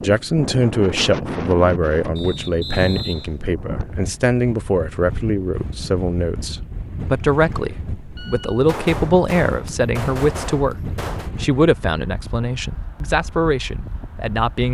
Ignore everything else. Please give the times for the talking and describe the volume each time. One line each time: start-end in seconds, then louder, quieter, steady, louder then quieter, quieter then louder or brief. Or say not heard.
0.0-14.7 steady.